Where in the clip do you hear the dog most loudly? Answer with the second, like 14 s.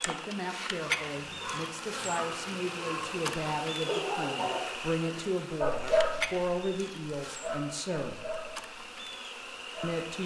6 s.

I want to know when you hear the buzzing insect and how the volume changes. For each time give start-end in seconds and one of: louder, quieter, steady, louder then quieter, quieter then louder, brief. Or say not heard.
0.0-10.2 quieter.